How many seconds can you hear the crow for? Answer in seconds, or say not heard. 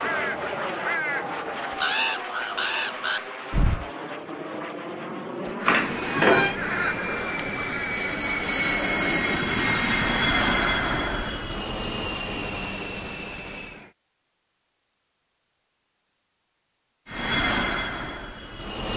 7 s.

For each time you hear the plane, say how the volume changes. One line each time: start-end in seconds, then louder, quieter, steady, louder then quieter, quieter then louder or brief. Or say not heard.
0.0-13.9 louder then quieter
17.1-18.9 brief.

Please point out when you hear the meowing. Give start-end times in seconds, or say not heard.
5.7-6.5.